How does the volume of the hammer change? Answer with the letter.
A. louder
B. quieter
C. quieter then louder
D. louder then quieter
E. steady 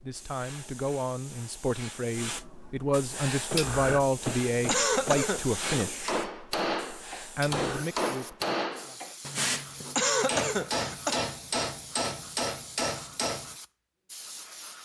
A.